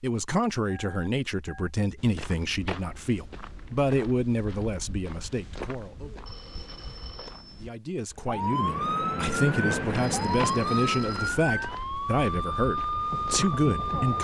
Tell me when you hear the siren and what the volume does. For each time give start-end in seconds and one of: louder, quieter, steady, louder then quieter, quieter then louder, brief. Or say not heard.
8.2-14.1 steady.